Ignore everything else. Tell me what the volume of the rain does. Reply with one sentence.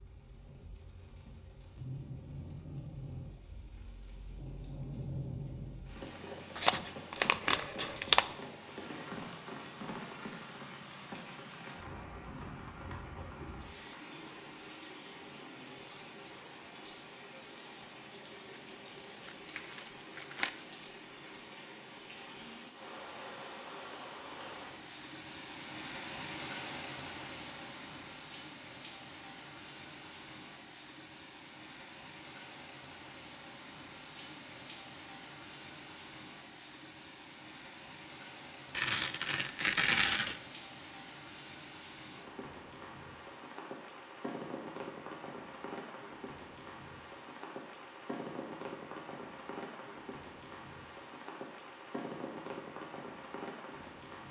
The volume of the rain stays about the same.